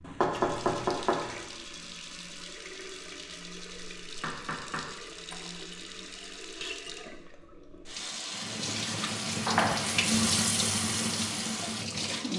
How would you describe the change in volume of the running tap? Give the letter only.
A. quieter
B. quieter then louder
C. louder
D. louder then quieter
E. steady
C.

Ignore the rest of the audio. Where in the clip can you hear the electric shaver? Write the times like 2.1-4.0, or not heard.
not heard.